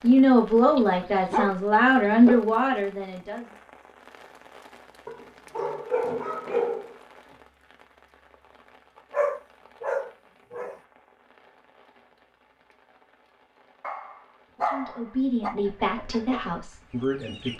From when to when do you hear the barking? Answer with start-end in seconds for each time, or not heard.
0.7-2.4, 5.0-7.0, 9.1-10.8, 13.8-15.6.